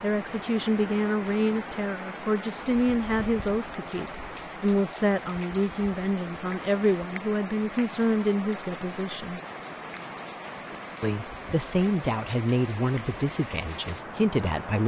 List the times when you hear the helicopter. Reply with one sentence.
You can't hear the helicopter here.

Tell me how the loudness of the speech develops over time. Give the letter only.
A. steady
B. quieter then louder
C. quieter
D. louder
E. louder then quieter
A.